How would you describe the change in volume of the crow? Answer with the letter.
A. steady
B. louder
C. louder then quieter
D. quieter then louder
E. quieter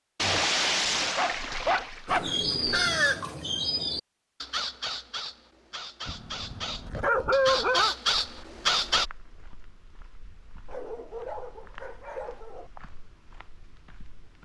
D.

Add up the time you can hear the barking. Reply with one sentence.
You can hear the barking for 7 seconds altogether.